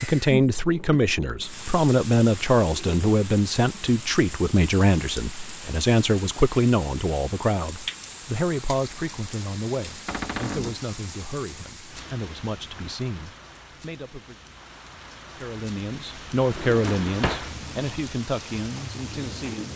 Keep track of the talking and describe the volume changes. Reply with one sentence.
The loudness of the talking goes down, then up.